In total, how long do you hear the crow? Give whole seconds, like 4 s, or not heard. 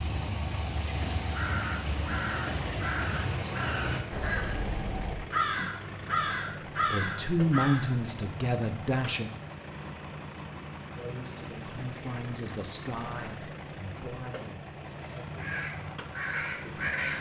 10 s.